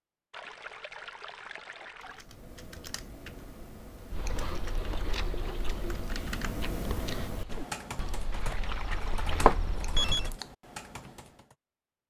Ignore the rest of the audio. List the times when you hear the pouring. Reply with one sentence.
You can hear the pouring from 0.3 to 2.2 s, from 4.2 to 6.0 s and from 8.3 to 9.6 s.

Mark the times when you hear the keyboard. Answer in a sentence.
You can hear the keyboard from 2.0 to 11.6 s.